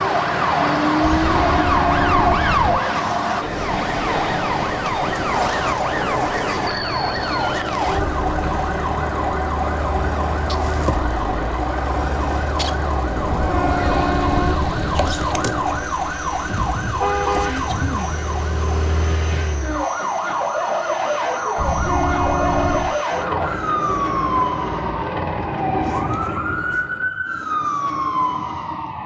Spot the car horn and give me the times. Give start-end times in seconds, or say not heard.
1.0-2.8, 13.2-15.2, 21.6-22.9.